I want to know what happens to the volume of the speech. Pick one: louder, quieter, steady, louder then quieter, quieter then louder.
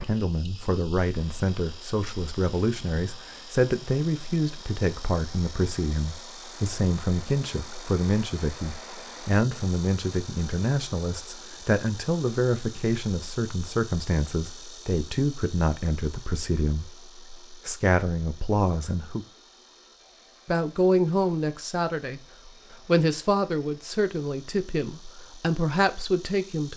steady.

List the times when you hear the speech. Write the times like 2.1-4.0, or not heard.
0.1-19.2, 20.4-26.7.